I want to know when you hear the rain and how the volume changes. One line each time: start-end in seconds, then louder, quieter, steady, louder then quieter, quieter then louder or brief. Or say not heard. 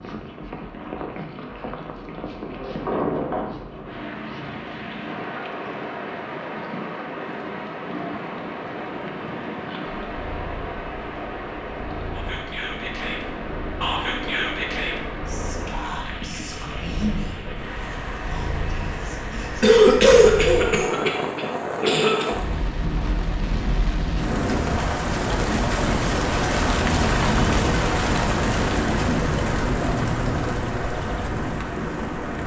0.0-32.4 louder.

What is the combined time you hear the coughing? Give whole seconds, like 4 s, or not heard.
3 s.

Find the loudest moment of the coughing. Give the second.
20 s.